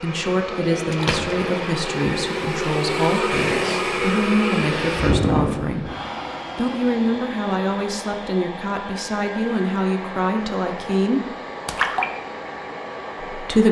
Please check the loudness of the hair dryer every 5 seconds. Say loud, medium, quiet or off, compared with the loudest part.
loud, loud, medium.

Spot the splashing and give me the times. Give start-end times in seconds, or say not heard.
0.9-1.6, 11.7-12.1.